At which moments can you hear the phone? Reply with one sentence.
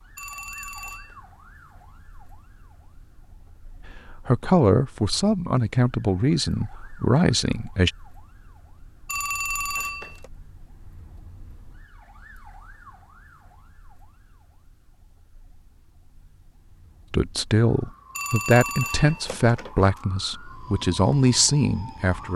You can hear the phone from 0.1 to 1.1 s, from 9.1 to 10.3 s and from 18.1 to 20.0 s.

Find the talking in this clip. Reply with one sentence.
The talking can be heard from 3.9 to 7.9 s and from 17.1 to 22.3 s.